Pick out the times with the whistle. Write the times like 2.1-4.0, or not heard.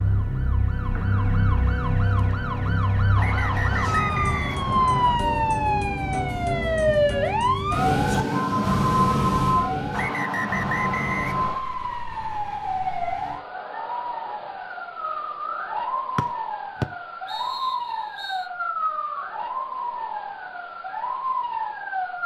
3.1-5.2, 9.9-11.7, 16.1-18.4.